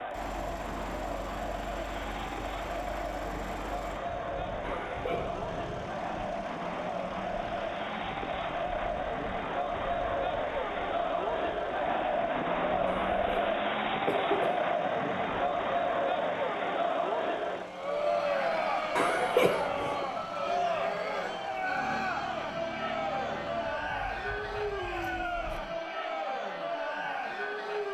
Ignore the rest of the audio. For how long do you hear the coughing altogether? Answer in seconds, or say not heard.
4 s.